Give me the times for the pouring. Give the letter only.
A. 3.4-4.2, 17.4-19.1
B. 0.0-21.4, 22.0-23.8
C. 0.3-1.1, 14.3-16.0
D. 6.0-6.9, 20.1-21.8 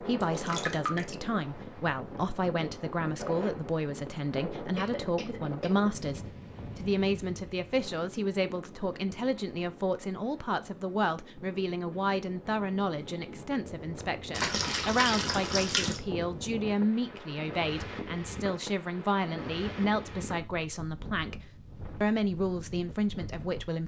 C.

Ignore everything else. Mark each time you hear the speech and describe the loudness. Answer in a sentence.
The speech can be heard from 0.0 to 21.4 s, at a steady volume; and briefly from 22.0 to 23.8 s.